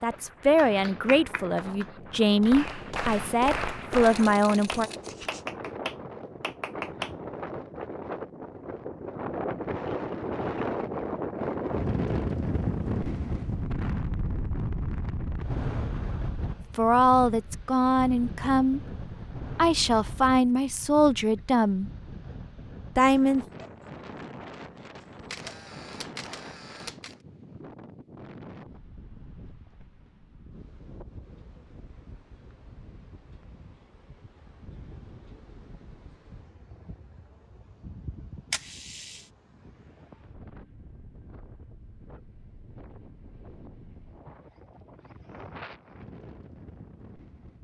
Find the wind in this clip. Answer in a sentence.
The wind can be heard from 0.0 to 47.5 s.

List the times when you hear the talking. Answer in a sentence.
The talking can be heard from 0.0 to 4.9 s, from 16.8 to 21.9 s and from 22.9 to 23.4 s.